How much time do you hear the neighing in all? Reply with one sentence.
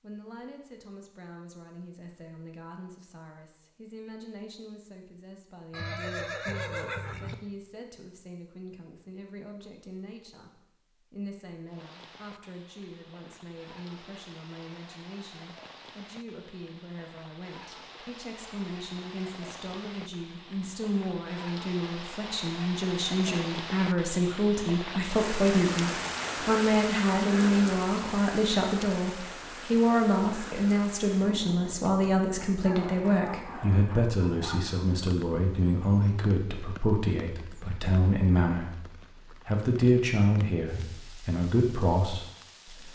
You can hear the neighing for 2 seconds altogether.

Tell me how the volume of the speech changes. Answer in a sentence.
The loudness of the speech goes up.